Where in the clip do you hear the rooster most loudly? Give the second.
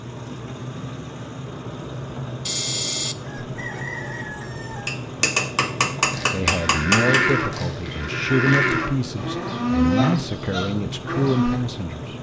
3 s.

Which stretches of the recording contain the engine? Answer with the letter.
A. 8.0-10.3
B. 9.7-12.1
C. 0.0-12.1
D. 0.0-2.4
C.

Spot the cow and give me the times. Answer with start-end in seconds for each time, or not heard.
6.1-11.6.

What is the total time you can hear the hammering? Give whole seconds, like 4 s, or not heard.
2 s.